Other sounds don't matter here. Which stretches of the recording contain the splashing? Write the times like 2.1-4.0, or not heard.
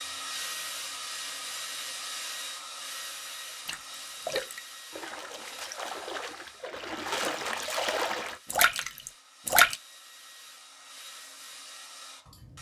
3.6-9.8.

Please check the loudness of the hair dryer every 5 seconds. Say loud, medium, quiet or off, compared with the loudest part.
loud, quiet, medium.